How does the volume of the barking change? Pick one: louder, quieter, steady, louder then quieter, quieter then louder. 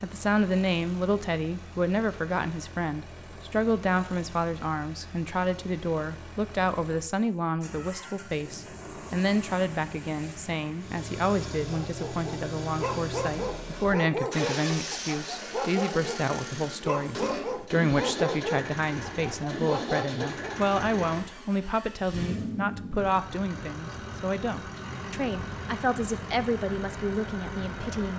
steady.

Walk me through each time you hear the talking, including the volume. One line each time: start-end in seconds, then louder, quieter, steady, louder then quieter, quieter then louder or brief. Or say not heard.
0.0-28.1 steady.